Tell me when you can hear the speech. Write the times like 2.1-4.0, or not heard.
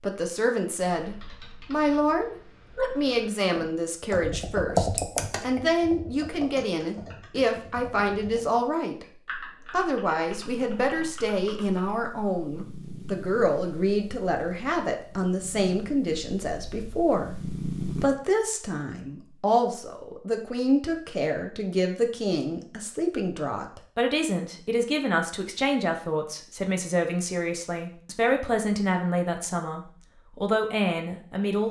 0.0-31.6.